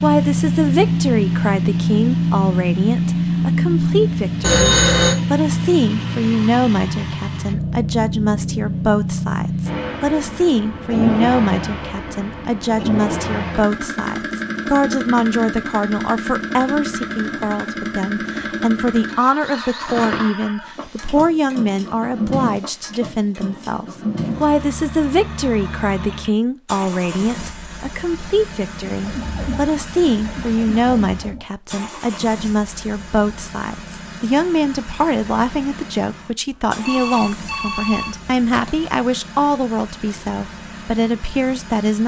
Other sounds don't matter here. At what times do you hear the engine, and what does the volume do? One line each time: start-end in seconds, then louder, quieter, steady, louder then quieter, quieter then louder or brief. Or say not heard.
0.0-42.0 quieter.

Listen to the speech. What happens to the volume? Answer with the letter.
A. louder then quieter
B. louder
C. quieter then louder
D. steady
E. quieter
D.